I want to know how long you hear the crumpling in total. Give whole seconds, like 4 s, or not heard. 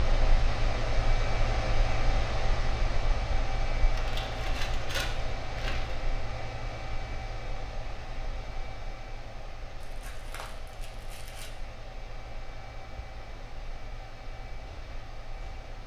4 s.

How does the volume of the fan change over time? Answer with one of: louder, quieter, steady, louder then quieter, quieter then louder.
quieter.